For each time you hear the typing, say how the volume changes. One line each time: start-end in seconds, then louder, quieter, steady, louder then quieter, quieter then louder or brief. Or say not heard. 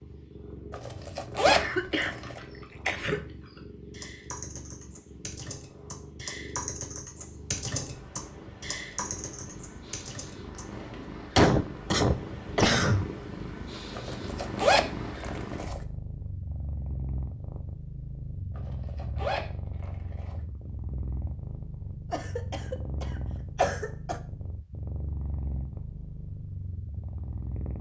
1.9-11.2 louder then quieter.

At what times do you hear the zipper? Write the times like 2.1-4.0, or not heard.
0.7-2.4, 13.9-15.8, 18.6-20.4.